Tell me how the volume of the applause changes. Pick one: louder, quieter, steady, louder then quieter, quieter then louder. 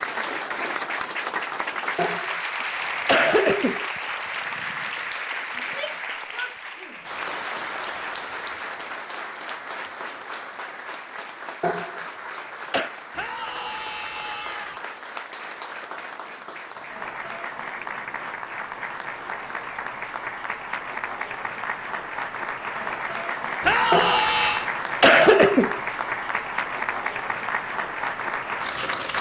quieter then louder.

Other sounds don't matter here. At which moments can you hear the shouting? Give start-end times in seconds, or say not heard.
5.5-7.1, 13.2-14.8, 23.6-24.7.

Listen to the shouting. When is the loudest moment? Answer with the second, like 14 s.
24 s.